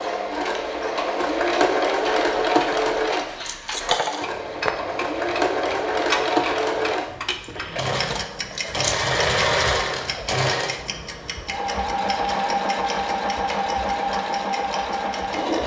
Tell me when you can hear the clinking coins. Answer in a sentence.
The clinking coins can be heard from 2.7 to 4.7 s and from 8.1 to 9.1 s.